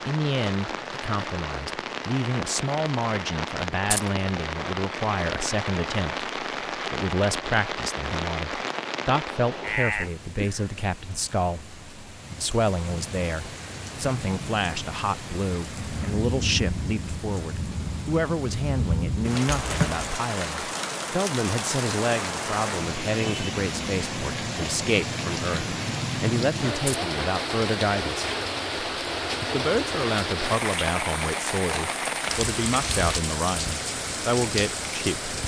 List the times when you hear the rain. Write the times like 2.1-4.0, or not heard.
0.0-35.4.